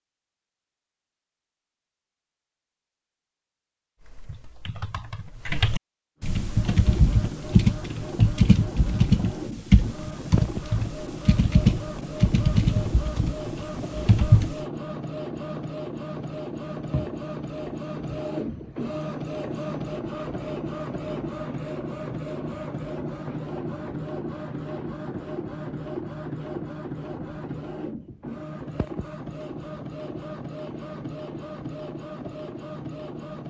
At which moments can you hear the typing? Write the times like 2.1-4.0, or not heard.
4.0-14.7.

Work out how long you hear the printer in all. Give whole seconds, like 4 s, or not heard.
27 s.